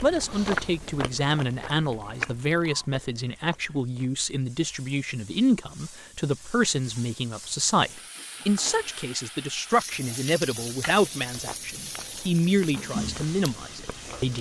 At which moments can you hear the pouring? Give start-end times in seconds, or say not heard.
not heard.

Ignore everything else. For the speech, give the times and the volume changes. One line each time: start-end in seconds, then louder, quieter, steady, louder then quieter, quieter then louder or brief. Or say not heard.
0.0-14.3 steady.